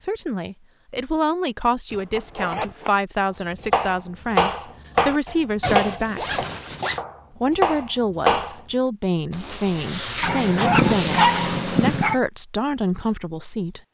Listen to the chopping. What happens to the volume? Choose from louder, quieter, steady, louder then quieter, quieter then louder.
quieter then louder.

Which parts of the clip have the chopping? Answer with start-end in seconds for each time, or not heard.
3.6-8.6.